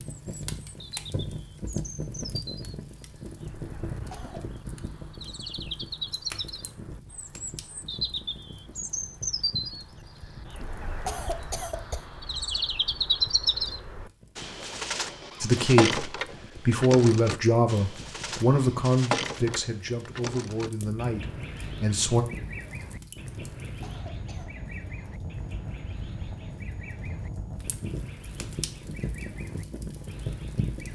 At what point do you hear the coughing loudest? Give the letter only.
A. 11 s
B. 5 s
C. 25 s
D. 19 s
A.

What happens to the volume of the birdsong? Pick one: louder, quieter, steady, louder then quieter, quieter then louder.
louder then quieter.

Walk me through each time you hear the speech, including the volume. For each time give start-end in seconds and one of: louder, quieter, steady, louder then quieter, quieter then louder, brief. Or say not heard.
15.4-22.2 quieter.